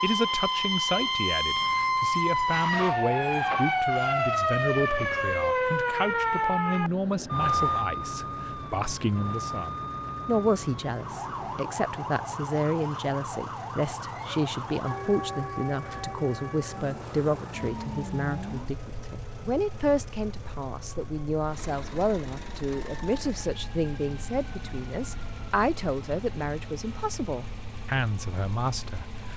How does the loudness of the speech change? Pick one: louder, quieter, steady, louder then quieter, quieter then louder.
steady.